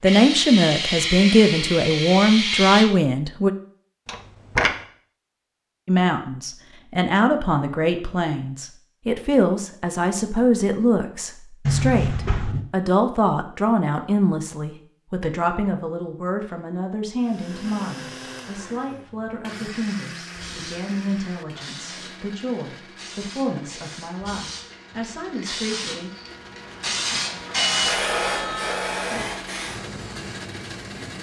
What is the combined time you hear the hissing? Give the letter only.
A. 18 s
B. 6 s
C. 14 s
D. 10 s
C.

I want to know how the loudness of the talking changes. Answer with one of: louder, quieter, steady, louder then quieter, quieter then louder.
quieter.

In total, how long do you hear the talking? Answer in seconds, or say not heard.
24 s.